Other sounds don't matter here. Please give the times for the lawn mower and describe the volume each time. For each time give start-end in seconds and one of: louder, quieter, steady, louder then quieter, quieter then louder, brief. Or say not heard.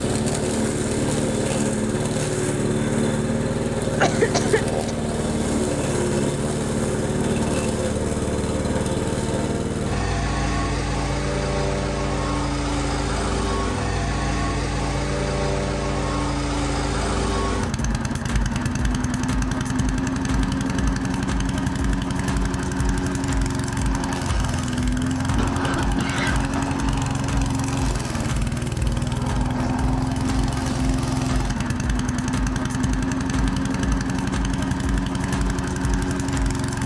0.0-36.8 steady.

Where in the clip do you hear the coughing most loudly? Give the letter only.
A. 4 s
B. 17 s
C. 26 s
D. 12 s
A.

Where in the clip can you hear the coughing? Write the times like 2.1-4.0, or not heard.
3.9-5.0, 25.4-26.7.